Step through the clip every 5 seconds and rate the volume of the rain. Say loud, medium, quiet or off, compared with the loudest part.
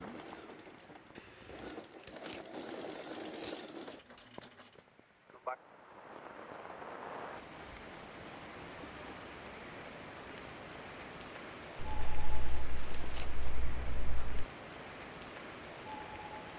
medium, loud, loud, loud.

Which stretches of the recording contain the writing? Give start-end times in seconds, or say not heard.
11.8-14.4.